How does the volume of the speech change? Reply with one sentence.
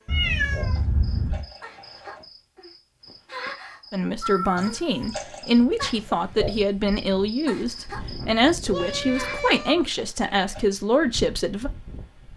The volume of the speech stays about the same.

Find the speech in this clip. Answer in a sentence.
The speech can be heard from 3.9 to 11.7 s.